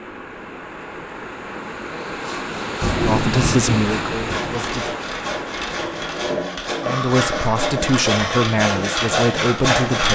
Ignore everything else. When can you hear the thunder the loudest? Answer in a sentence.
The loudest moment of the thunder is at 3 seconds.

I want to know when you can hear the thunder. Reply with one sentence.
You can hear the thunder from 2.8 to 4.6 s.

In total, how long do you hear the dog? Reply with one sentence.
The dog can be heard for 2 seconds in total.